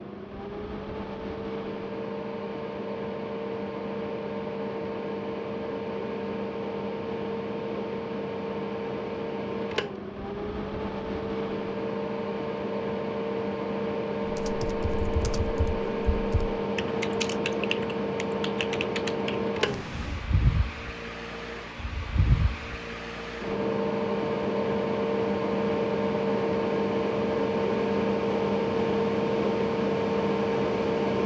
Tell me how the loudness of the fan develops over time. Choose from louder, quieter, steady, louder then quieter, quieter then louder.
louder.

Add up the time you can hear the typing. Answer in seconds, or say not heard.
6 s.